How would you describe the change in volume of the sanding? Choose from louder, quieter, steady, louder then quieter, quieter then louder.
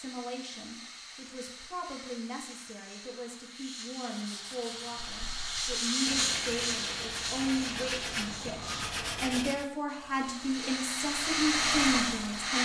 louder.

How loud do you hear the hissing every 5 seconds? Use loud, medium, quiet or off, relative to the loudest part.
quiet, loud, loud.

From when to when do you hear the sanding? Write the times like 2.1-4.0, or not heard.
4.2-9.7.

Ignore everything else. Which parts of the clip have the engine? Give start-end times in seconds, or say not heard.
9.9-12.5.